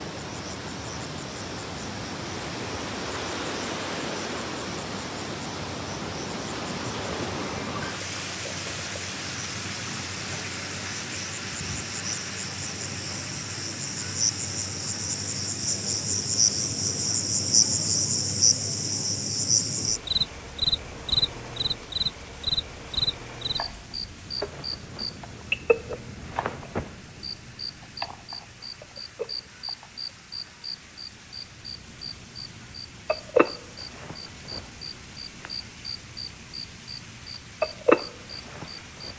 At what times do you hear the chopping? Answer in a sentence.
You can't hear the chopping here.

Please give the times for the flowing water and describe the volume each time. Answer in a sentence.
The flowing water can be heard from 0.0 to 39.1 s, getting quieter.